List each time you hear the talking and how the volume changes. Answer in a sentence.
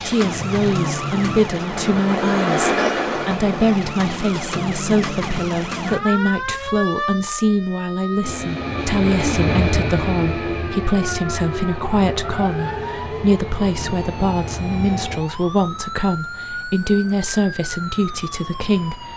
You can hear the talking from 0.0 to 19.1 s, at a steady volume.